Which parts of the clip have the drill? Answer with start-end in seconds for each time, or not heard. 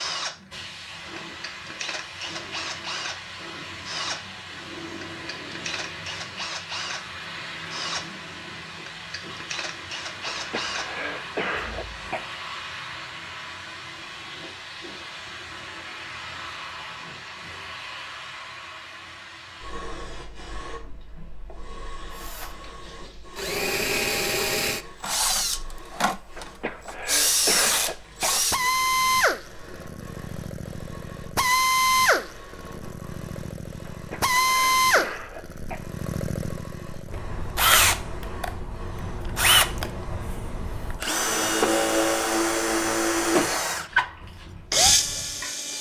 0.0-12.1, 22.1-45.7.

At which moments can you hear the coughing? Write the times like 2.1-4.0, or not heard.
10.2-12.2, 26.4-28.4, 33.9-35.9.